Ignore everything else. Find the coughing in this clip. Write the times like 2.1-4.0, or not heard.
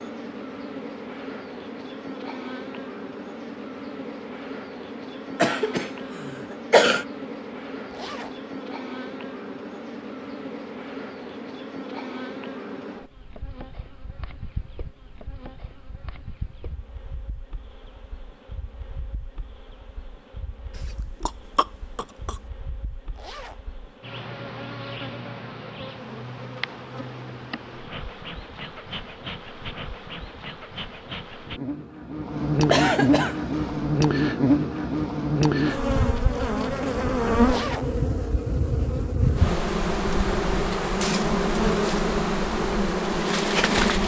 5.3-7.0, 20.8-22.4, 32.7-33.9.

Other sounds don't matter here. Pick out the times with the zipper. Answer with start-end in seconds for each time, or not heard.
7.9-8.4, 23.1-23.6, 37.4-38.0.